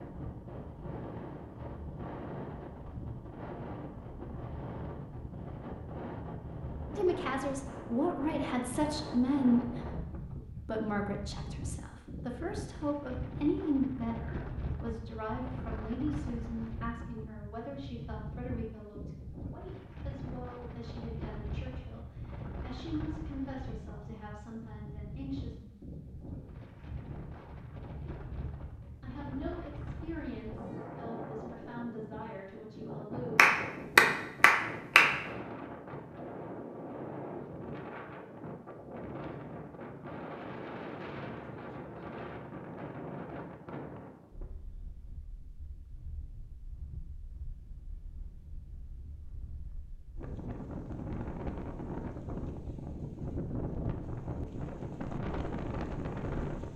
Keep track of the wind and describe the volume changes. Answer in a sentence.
The volume of the wind stays about the same.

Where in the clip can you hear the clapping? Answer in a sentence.
The clapping can be heard from 33.4 to 35.1 s.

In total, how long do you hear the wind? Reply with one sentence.
You can hear the wind for 57 seconds altogether.